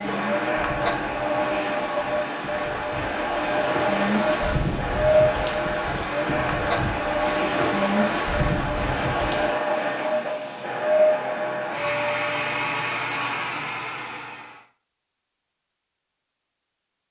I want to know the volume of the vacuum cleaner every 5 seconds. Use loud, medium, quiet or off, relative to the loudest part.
loud, loud, loud, off.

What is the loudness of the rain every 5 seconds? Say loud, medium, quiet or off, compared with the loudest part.
loud, loud, off, off.